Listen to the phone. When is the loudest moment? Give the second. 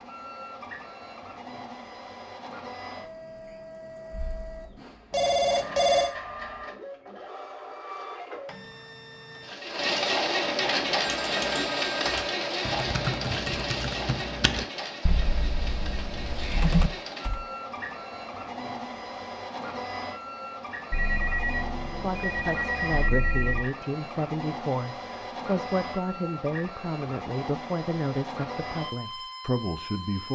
6 s.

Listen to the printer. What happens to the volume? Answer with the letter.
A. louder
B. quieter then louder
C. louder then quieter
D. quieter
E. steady
C.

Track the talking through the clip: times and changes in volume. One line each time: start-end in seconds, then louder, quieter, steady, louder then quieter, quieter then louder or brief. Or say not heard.
21.9-30.3 steady.